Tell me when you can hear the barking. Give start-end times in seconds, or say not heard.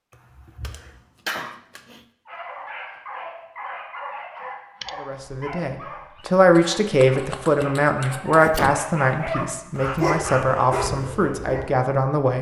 2.2-11.7.